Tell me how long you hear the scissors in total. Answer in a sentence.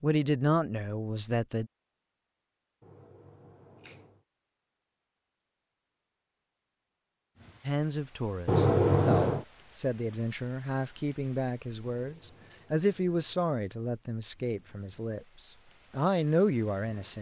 You can hear the scissors for 3 seconds altogether.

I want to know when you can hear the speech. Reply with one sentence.
The speech can be heard from 0.0 to 1.7 s and from 7.7 to 17.1 s.